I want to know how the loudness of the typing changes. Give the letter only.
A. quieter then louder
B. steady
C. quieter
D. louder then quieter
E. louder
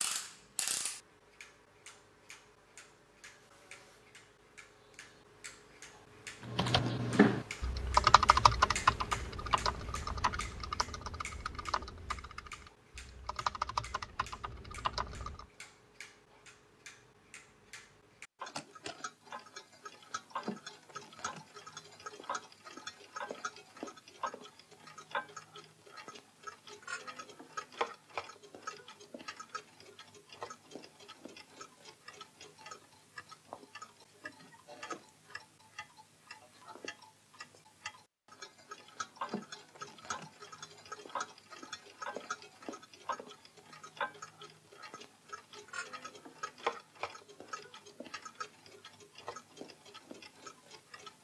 A.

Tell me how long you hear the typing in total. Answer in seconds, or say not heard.
9 s.